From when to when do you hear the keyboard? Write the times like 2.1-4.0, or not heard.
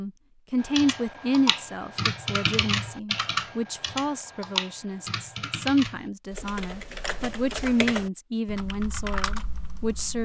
0.6-10.2.